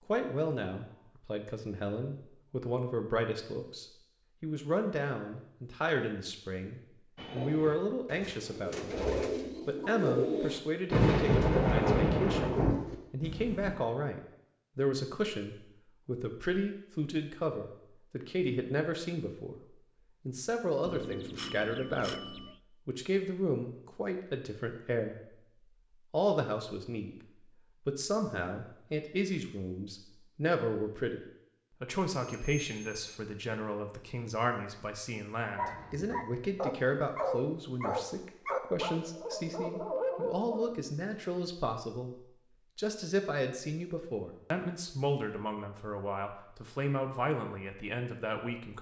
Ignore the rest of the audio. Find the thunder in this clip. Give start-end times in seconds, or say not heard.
10.9-12.8.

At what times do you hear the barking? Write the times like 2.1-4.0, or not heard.
35.5-40.8.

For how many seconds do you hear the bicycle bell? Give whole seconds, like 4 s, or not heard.
3 s.